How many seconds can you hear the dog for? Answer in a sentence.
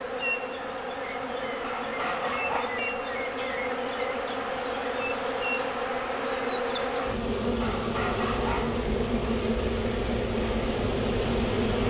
You can hear the dog for 3 seconds altogether.